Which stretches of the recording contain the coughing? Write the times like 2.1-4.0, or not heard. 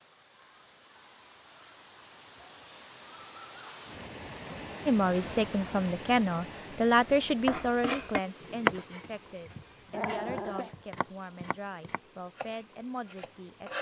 not heard.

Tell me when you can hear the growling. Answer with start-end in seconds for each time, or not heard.
9.5-10.8.